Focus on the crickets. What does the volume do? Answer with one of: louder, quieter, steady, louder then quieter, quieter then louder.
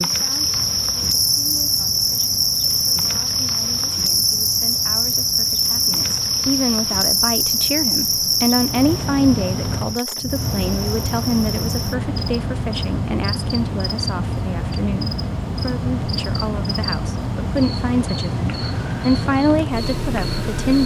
quieter.